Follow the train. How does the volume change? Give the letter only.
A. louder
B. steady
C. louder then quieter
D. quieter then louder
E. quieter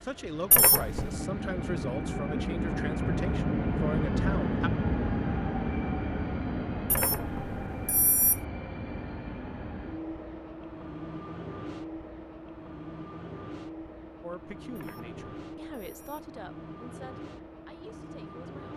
E.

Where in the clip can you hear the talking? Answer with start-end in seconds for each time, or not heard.
0.0-4.7, 14.2-18.7.